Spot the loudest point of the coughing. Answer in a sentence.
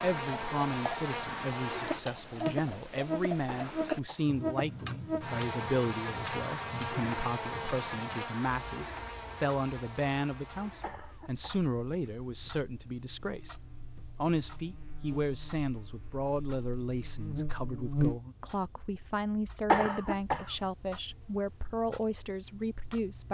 The volume of the coughing peaks at 20 seconds.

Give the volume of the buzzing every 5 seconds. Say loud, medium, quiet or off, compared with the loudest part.
loud, loud, quiet, loud, off.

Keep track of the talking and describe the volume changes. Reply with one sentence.
The volume of the talking stays about the same.